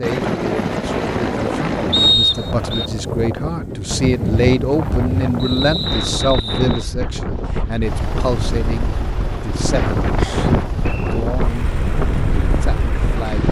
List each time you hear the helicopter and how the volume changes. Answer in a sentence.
The helicopter can be heard briefly from 0.0 to 2.1 s; and from 7.8 to 13.4 s, at a steady volume.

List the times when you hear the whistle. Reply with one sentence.
You can hear the whistle from 1.9 to 2.9 s, from 5.3 to 6.9 s and from 10.2 to 11.2 s.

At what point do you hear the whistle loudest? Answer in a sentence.
The volume of the whistle peaks at 2 seconds.